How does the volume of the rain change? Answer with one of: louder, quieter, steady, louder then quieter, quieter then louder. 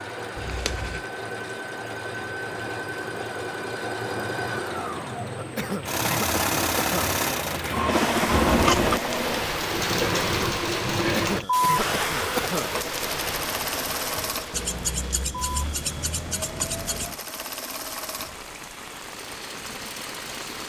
louder then quieter.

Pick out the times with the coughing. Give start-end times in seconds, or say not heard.
5.3-7.2, 10.9-12.8.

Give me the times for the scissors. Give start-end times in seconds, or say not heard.
0.3-1.1, 8.3-9.0, 14.5-17.1.